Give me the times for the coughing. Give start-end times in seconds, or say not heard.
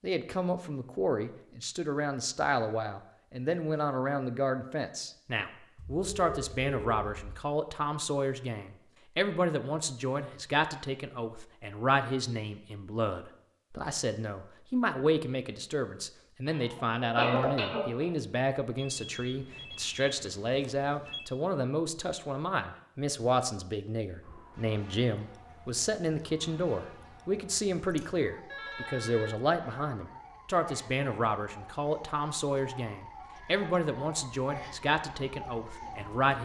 16.4-18.1.